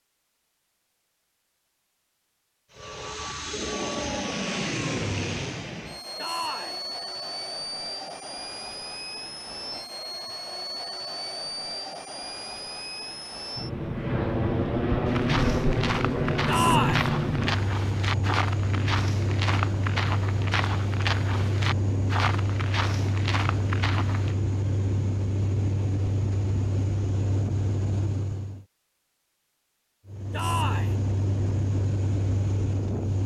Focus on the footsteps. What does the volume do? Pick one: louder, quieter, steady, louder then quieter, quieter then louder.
steady.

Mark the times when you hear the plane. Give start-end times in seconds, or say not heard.
2.7-28.6, 30.1-33.2.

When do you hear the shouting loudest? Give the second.
17 s.